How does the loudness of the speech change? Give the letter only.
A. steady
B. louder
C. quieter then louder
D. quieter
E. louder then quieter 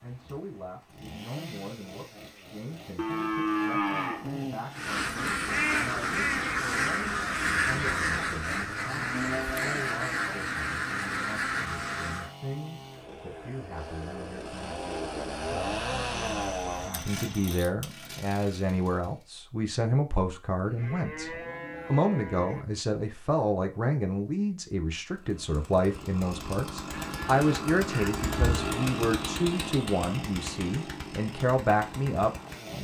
B.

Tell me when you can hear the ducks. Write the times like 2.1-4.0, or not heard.
4.7-12.3.